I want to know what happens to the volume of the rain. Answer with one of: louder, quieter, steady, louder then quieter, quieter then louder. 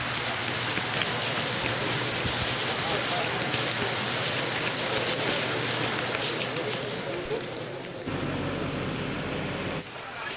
quieter.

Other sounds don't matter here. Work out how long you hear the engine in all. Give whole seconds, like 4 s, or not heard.
2 s.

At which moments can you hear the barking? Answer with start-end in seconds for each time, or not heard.
not heard.